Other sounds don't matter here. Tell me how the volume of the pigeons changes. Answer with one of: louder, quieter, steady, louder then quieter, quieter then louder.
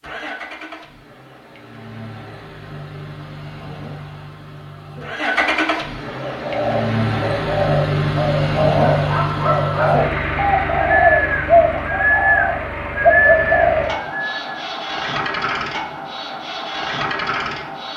louder.